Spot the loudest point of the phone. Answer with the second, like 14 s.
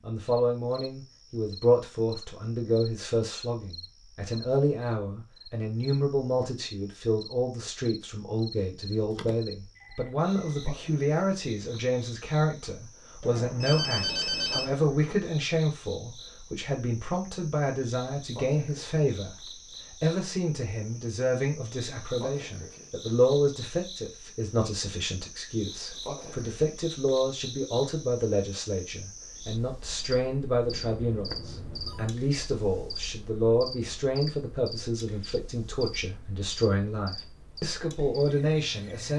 14 s.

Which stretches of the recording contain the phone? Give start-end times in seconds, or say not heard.
9.1-10.7, 13.2-14.8, 30.6-32.1.